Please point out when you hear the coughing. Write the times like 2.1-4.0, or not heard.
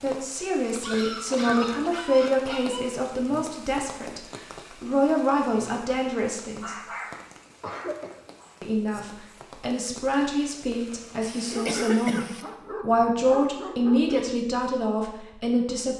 1.3-1.9, 7.5-8.2, 11.2-12.4.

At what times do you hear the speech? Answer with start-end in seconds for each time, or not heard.
0.0-6.8, 8.6-15.9.